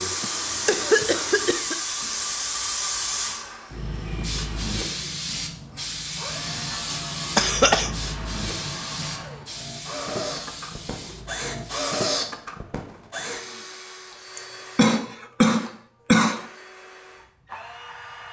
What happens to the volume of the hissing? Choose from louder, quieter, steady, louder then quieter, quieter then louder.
quieter.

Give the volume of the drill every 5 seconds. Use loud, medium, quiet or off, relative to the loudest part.
medium, medium, loud, medium.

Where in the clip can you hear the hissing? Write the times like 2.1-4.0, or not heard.
0.0-11.9.